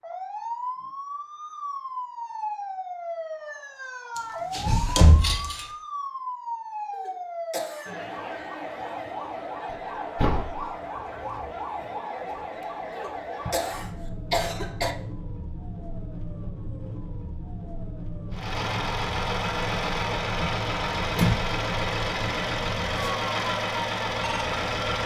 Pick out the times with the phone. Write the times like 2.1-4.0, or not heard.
not heard.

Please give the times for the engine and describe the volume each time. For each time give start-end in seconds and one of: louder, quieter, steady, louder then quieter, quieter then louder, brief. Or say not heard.
18.3-25.0 steady.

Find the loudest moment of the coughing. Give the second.
14 s.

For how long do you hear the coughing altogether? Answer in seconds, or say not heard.
3 s.